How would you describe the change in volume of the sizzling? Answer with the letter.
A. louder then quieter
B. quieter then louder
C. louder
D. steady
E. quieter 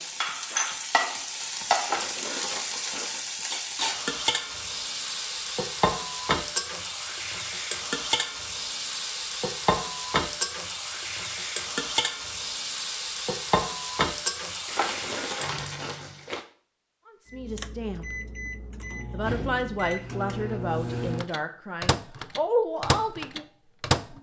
D.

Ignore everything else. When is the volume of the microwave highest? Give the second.
23 s.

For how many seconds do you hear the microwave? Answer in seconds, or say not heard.
7 s.